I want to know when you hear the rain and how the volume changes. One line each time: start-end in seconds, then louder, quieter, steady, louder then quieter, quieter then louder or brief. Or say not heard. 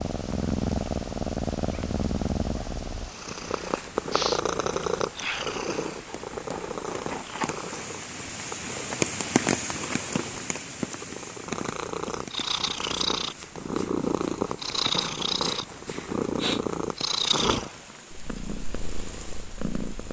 0.0-20.0 louder then quieter.